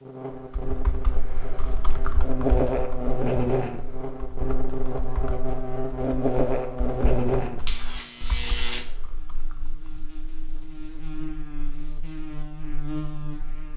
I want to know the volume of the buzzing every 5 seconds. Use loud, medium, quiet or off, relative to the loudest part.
loud, loud, medium.